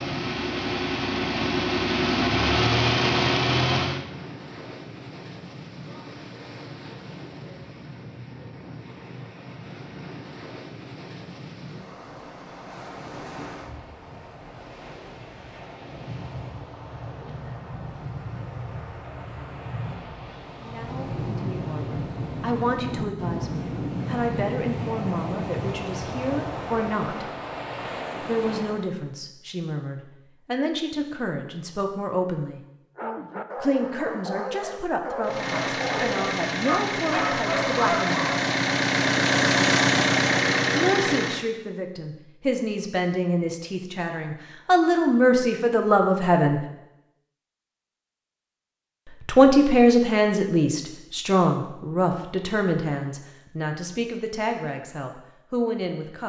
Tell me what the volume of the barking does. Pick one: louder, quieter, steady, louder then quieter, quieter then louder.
louder.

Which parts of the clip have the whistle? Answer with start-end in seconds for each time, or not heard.
not heard.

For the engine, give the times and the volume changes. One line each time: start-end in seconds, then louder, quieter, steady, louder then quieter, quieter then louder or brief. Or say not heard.
0.0-4.0 louder
35.2-41.5 louder.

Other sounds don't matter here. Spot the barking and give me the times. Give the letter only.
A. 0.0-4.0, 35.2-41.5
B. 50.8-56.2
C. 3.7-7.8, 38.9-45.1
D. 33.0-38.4
D.